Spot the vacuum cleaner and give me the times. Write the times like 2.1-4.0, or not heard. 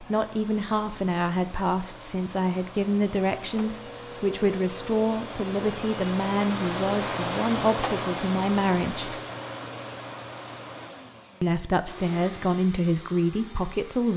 0.0-14.1.